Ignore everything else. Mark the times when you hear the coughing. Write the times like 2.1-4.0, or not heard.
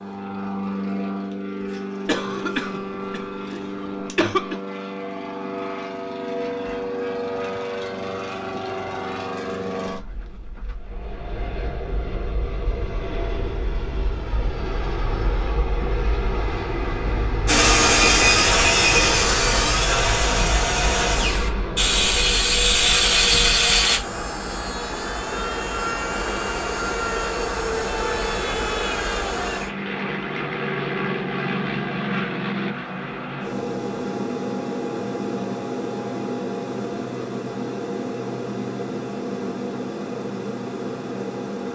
2.0-4.6.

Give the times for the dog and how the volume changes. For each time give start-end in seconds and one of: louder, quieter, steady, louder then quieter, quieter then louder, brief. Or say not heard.
not heard.